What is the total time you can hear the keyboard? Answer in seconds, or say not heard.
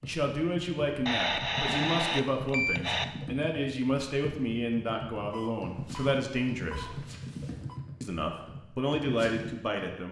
10 s.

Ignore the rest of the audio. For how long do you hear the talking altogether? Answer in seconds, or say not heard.
9 s.